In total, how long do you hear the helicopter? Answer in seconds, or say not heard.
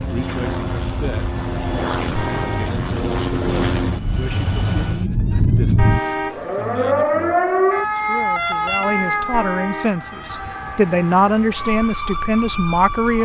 5 s.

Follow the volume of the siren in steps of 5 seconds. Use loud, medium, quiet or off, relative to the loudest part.
medium, loud, medium.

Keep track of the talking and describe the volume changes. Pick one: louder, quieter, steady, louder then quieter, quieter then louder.
louder.